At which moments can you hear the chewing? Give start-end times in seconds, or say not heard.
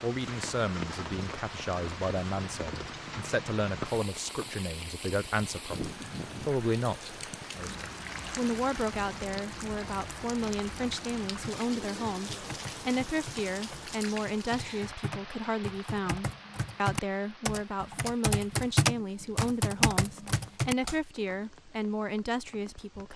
not heard.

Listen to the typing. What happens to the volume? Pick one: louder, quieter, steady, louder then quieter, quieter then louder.
louder.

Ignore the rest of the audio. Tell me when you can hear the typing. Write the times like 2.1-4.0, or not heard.
11.4-20.9.